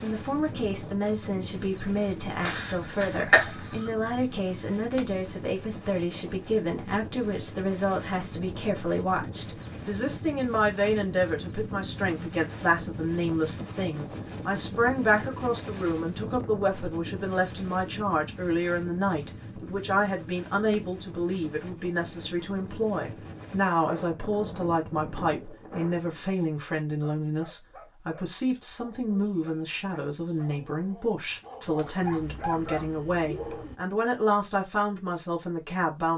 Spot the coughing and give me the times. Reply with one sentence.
You can hear the coughing from 2.4 to 3.9 s.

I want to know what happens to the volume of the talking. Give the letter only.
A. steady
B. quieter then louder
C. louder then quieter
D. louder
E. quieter
A.